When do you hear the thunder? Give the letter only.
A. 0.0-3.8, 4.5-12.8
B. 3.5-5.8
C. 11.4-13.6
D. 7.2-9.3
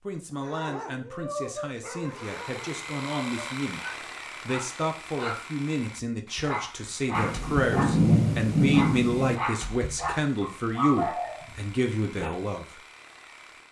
D.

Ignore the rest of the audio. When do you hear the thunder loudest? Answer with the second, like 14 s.
8 s.